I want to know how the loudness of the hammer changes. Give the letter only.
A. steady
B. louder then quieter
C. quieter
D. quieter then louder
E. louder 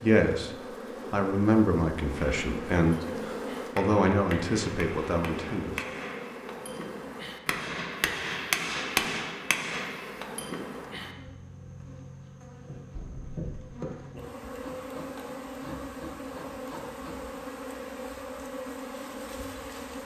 B.